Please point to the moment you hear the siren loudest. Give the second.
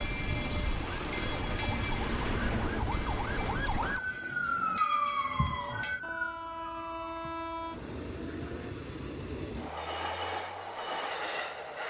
5 s.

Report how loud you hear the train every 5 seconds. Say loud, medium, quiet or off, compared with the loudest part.
medium, loud, loud.